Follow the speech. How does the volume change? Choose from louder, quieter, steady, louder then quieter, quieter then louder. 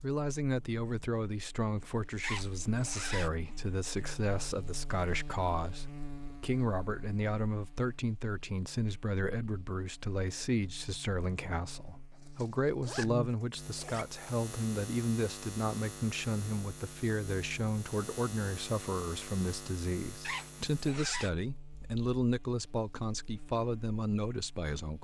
steady.